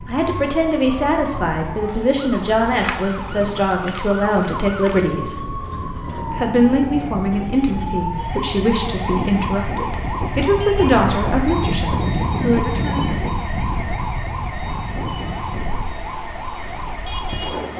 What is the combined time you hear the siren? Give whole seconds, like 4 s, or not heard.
18 s.